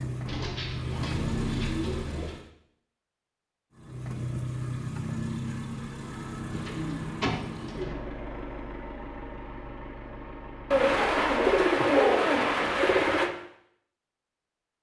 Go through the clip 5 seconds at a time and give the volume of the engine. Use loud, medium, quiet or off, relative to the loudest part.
loud, loud, medium.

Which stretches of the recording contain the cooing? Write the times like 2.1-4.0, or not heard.
0.2-2.4, 6.5-8.0, 10.7-13.3.